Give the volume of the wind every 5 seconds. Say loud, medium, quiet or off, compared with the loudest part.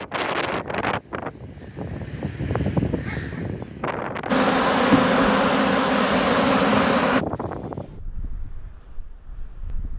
loud, medium.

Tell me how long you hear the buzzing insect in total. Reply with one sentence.
You can hear the buzzing insect for 3 seconds altogether.